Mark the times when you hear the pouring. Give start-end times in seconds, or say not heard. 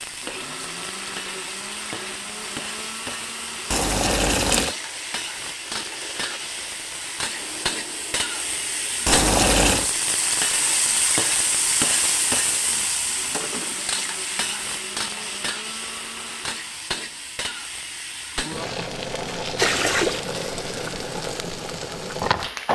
3.7-4.8, 9.1-9.9, 19.6-20.2.